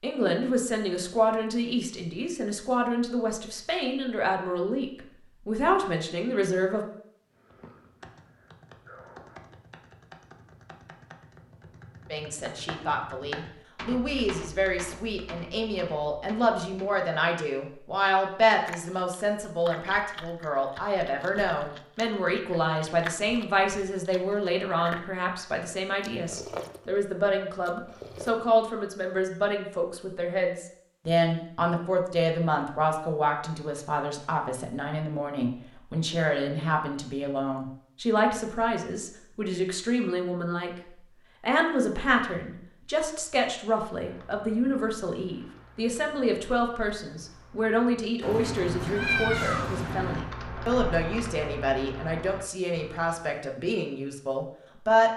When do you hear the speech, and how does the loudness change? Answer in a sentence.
The speech can be heard from 0.0 to 6.8 s, at a steady volume; from 12.1 to 40.7 s, at a steady volume; and from 41.4 to 55.1 s, at a steady volume.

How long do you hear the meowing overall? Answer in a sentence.
You can hear the meowing for 2 seconds altogether.